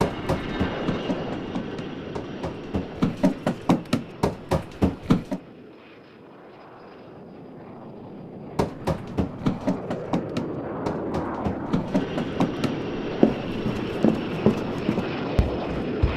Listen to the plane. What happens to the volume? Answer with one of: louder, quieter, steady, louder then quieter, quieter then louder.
quieter then louder.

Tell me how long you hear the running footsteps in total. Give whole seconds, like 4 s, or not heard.
13 s.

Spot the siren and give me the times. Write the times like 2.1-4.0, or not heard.
not heard.